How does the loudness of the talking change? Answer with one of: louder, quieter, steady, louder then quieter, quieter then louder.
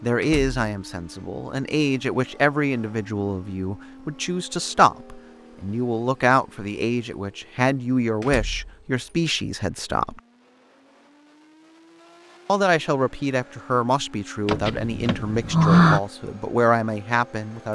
steady.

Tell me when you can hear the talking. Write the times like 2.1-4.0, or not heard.
0.0-10.2, 12.4-17.6.